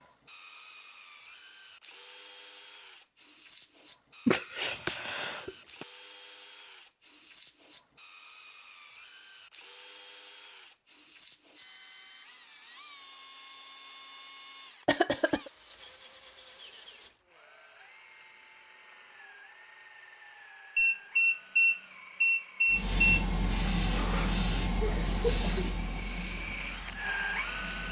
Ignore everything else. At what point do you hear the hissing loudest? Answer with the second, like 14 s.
24 s.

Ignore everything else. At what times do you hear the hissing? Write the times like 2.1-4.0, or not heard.
22.7-27.8.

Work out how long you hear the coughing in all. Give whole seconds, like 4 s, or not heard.
3 s.